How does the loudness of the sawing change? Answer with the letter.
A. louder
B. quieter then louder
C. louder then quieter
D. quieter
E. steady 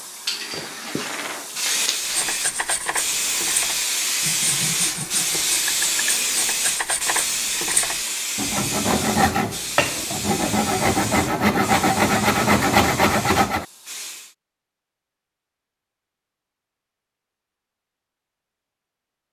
A.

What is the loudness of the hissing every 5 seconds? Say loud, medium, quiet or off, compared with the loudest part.
loud, loud, medium, off.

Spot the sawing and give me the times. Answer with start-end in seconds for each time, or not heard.
1.9-13.7.